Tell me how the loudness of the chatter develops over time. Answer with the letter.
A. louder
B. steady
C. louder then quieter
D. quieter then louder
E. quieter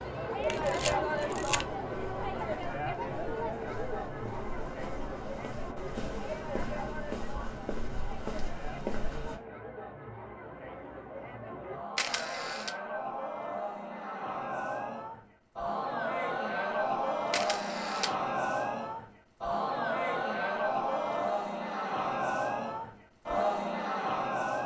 D.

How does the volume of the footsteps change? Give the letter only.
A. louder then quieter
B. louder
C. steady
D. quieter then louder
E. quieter
B.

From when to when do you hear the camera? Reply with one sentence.
The camera can be heard from 0.5 to 1.6 s, from 11.9 to 12.8 s and from 17.3 to 18.1 s.